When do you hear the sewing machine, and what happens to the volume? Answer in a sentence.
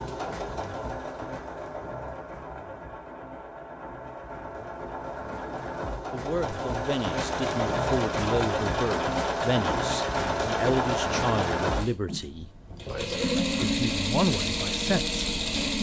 You can hear the sewing machine from 0.0 to 15.7 s, getting louder.